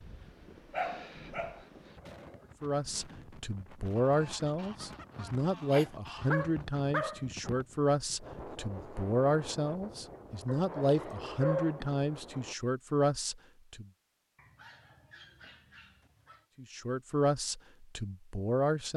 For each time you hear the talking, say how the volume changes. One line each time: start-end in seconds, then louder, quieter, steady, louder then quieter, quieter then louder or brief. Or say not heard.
2.6-13.8 steady
16.6-18.9 brief.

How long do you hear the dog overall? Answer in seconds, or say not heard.
7 s.